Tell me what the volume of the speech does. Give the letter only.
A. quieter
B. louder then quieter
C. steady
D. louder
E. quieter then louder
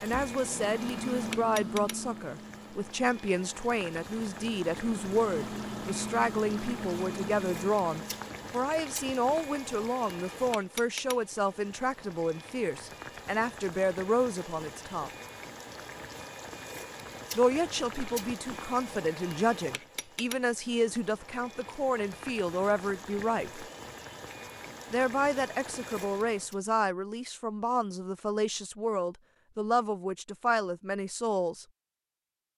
C.